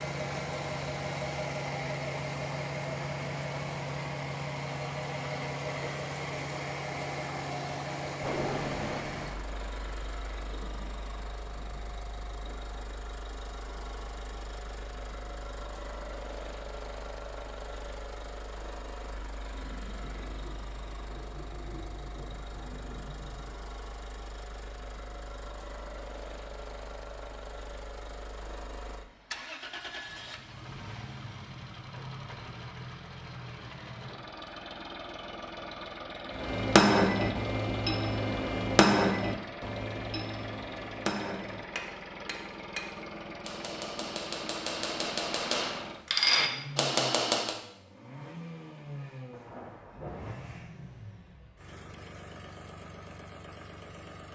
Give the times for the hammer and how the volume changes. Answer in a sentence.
The hammer can be heard from 36.3 to 47.5 s, getting quieter then louder.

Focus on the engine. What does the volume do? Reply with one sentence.
The loudness of the engine goes down.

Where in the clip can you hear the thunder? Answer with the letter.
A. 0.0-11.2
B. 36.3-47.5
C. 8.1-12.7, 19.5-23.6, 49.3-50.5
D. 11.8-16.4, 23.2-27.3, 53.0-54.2
C.